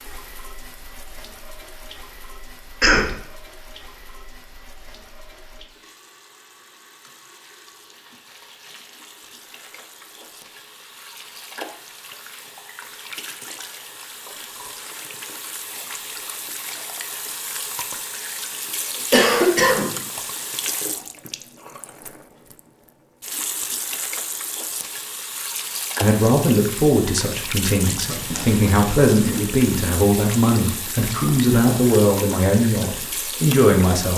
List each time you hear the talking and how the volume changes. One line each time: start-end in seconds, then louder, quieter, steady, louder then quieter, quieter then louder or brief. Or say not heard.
26.0-34.1 steady.